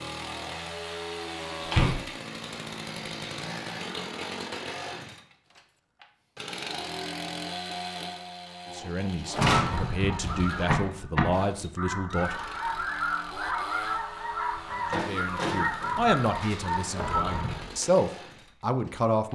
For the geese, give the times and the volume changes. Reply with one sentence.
The geese can be heard from 9.3 to 17.6 s, at a steady volume.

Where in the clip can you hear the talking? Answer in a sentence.
The talking can be heard from 8.8 to 12.3 s and from 14.7 to 19.3 s.